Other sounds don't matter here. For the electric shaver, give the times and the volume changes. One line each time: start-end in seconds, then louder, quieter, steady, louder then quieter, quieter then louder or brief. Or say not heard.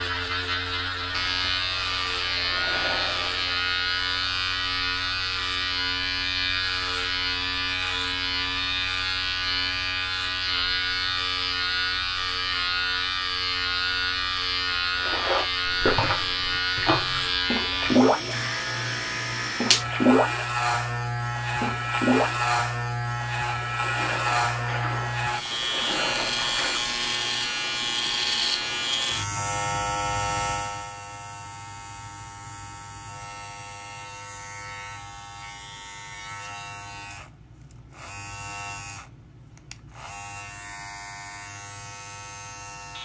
0.0-43.0 quieter.